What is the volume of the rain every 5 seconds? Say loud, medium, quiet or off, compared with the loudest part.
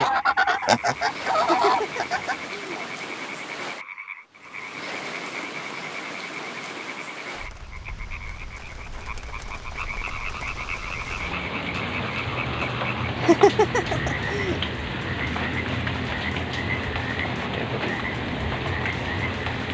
medium, medium, loud, loud.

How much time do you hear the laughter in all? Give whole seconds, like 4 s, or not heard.
3 s.